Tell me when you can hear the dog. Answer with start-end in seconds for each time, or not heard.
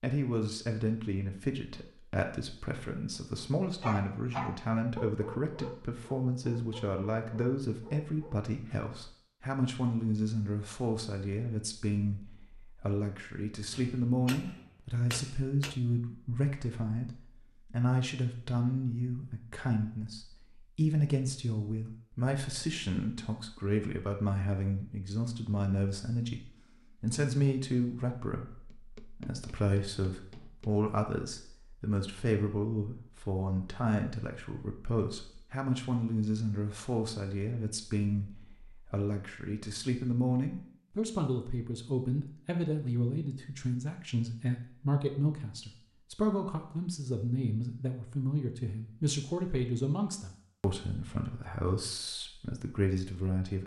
3.8-8.9.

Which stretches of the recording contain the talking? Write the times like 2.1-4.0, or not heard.
0.0-53.6.